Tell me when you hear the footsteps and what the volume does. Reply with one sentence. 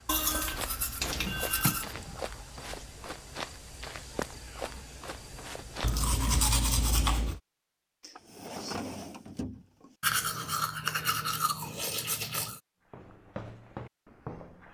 You can hear the footsteps from 0.0 to 6.0 s, at a steady volume; and briefly from 12.9 to 14.6 s.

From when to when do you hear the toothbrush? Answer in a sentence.
You can hear the toothbrush from 0.1 to 1.9 s, from 5.8 to 7.4 s and from 10.0 to 12.6 s.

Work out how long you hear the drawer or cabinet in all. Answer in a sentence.
You can hear the drawer or cabinet for 3 seconds altogether.